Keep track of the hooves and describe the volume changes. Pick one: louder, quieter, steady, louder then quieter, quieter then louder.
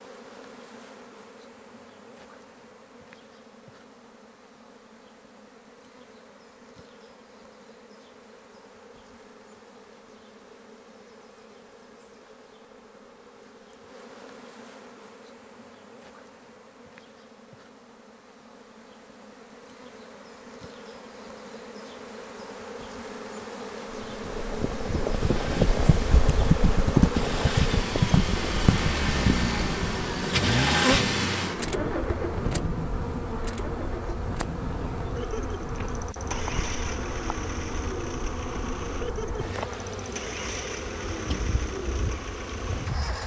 louder then quieter.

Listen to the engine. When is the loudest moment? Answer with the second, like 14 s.
31 s.